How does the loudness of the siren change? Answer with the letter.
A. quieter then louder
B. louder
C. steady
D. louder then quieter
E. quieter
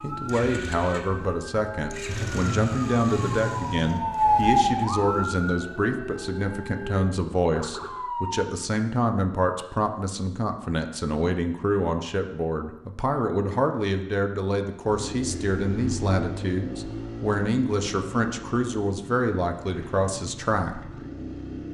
D.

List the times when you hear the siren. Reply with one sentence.
You can hear the siren from 0.0 to 8.4 s.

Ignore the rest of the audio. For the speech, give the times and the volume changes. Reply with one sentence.
You can hear the speech from 0.0 to 20.8 s, at a steady volume.